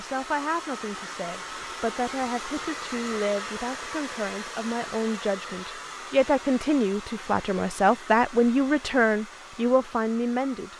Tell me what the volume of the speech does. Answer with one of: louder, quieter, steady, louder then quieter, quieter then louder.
louder.